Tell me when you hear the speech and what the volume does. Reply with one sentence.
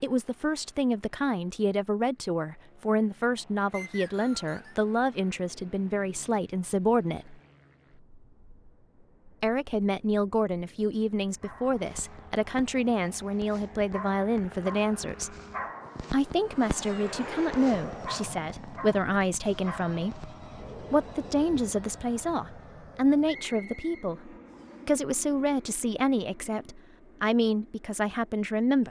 The speech can be heard from 0.0 to 7.3 s, at a steady volume; from 9.4 to 15.3 s, at a steady volume; and from 16.1 to 28.8 s, at a steady volume.